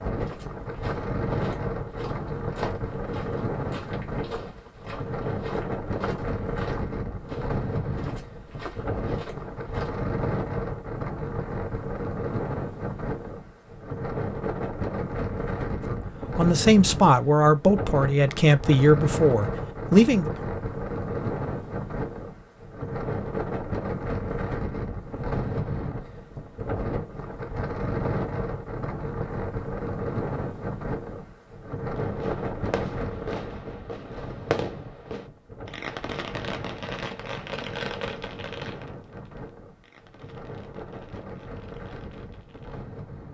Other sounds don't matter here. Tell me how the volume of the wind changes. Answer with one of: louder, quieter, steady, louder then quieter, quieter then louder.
quieter.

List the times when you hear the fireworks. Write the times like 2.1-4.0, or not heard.
32.0-43.0.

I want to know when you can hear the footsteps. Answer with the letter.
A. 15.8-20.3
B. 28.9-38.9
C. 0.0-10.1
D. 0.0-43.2
C.